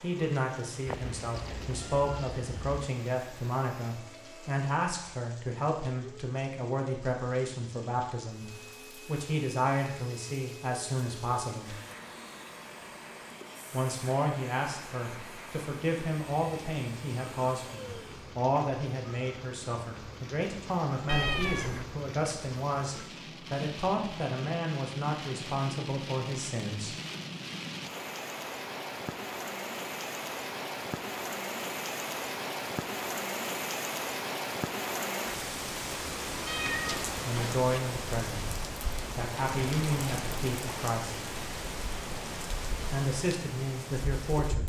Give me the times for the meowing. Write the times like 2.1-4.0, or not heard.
0.8-2.9, 21.1-21.9, 36.5-37.6.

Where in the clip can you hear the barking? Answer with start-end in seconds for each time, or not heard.
not heard.